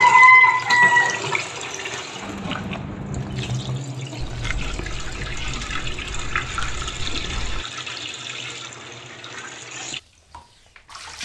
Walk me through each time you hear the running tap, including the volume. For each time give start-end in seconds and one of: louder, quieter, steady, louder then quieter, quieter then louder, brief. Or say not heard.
0.0-11.2 quieter.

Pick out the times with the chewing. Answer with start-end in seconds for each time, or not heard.
2.2-7.7.